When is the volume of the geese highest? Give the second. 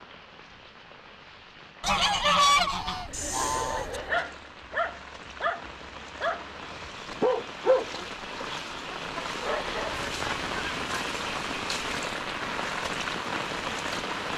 2 s.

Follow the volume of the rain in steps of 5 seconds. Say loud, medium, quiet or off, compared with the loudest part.
quiet, medium, loud.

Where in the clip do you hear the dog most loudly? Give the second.
8 s.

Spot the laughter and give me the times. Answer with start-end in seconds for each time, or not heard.
3.0-4.4.